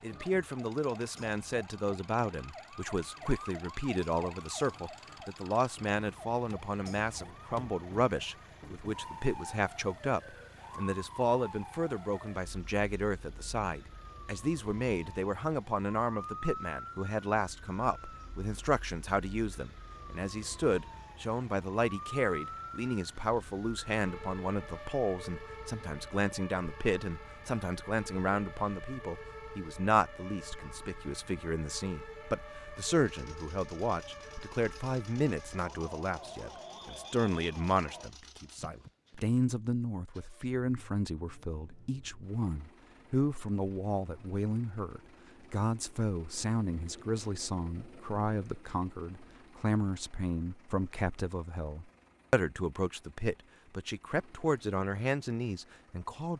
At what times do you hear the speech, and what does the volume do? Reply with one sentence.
You can hear the speech from 0.0 to 56.3 s, at a steady volume.